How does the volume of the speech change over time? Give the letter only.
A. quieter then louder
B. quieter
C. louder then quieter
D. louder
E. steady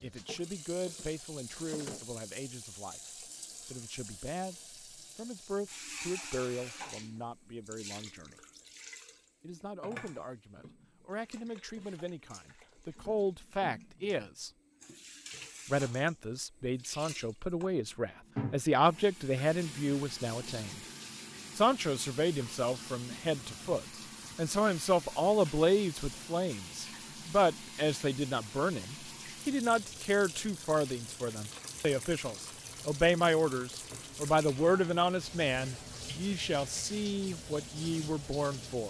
D.